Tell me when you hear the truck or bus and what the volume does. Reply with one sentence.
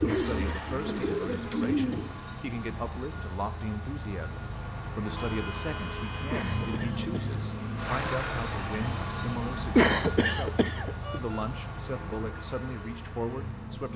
You can hear the truck or bus from 0.0 to 13.9 s, getting louder then quieter.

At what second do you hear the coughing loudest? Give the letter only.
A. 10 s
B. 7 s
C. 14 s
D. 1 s
A.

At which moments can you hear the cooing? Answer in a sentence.
The cooing can be heard from 0.0 to 2.1 s.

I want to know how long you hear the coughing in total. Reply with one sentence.
The coughing can be heard for 4 seconds in total.